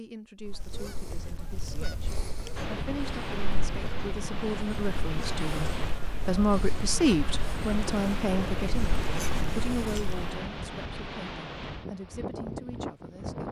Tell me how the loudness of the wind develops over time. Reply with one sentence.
The loudness of the wind stays about the same.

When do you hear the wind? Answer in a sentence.
The wind can be heard from 2.5 to 13.4 s.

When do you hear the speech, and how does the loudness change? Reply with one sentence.
The speech can be heard from 0.0 to 13.4 s, getting louder then quieter.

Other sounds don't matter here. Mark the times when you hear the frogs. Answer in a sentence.
The frogs can't be heard in this clip.